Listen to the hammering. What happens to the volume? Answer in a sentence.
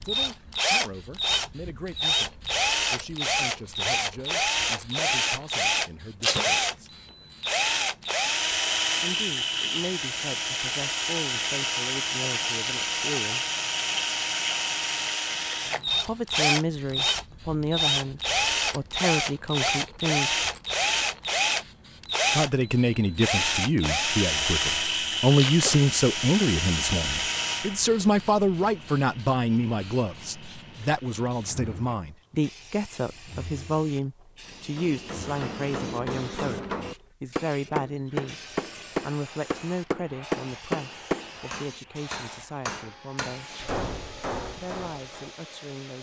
The volume of the hammering goes up, then down.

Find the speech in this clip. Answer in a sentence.
The speech can be heard from 0.0 to 7.0 s, from 9.0 to 13.4 s, from 16.0 to 20.3 s, from 22.4 to 36.6 s, from 37.2 to 43.5 s and from 44.5 to 45.9 s.